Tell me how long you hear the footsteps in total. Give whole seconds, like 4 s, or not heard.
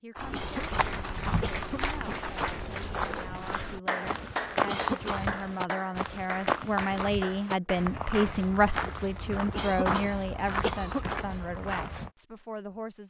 12 s.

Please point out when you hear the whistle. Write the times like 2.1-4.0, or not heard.
not heard.